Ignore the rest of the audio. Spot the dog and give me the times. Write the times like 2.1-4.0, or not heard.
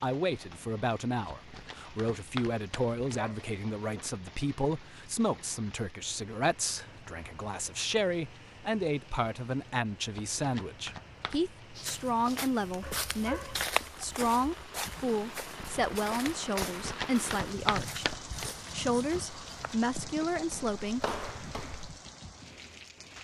3.1-4.0, 12.8-14.7.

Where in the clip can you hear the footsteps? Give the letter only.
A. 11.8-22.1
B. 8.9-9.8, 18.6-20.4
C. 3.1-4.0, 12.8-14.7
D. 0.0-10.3
A.